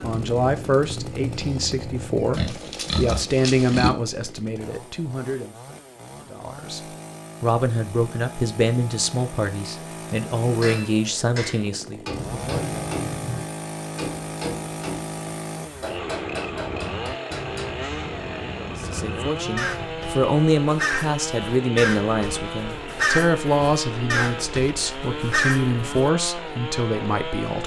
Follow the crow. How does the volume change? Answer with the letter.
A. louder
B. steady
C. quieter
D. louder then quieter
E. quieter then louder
A.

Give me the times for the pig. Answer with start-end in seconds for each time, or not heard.
2.3-3.9.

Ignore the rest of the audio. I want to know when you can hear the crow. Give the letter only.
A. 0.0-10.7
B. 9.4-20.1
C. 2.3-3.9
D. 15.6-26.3
D.